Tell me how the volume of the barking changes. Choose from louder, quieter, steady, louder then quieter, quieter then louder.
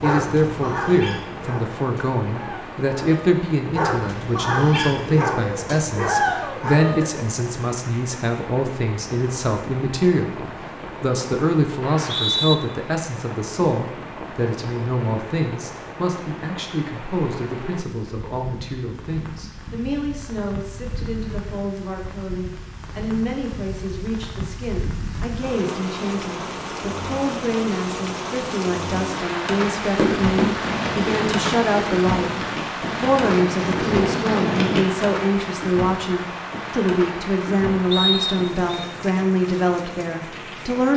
quieter then louder.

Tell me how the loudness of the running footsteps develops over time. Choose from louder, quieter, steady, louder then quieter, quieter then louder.
quieter then louder.